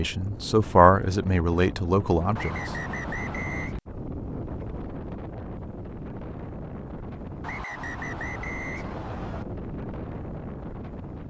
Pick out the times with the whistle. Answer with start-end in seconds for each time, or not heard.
2.4-3.8, 7.4-9.4.